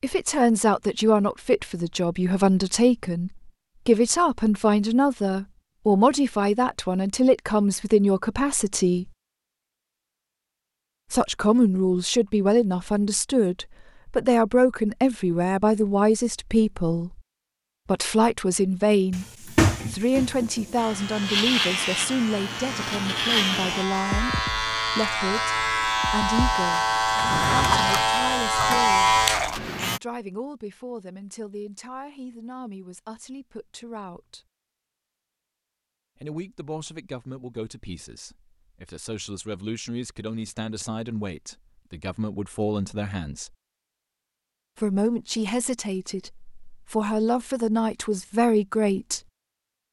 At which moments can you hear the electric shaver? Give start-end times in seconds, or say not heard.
20.8-30.0.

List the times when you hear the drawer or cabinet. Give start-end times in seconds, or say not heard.
19.1-20.8, 27.1-28.8.